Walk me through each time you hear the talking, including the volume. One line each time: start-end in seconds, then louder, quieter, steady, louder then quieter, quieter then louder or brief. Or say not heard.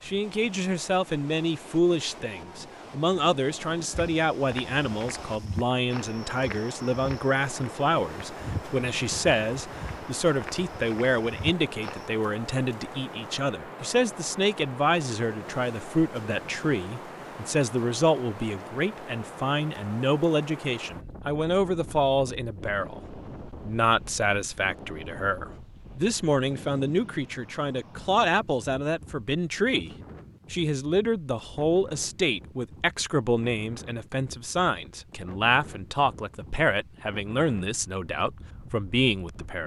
0.0-29.9 steady
30.5-39.6 steady.